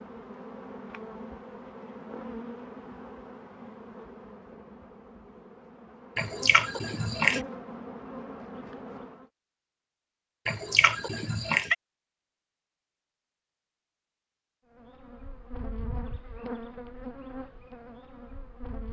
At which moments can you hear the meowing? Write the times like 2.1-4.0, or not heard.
6.2-7.4, 10.4-11.8.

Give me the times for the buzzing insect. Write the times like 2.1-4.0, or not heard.
0.0-9.3, 14.7-18.8.